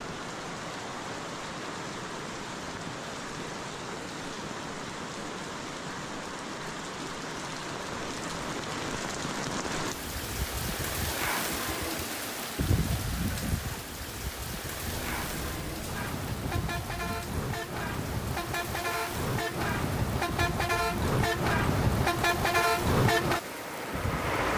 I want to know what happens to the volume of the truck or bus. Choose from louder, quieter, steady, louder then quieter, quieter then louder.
louder.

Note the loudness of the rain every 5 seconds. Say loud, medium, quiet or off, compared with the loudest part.
loud, loud, loud, medium, medium.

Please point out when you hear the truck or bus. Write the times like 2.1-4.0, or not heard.
14.8-24.5.